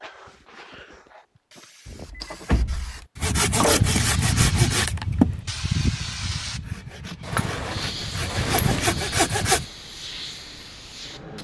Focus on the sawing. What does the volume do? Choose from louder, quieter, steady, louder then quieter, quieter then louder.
quieter then louder.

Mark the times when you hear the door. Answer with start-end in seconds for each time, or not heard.
1.9-3.0, 7.2-9.0.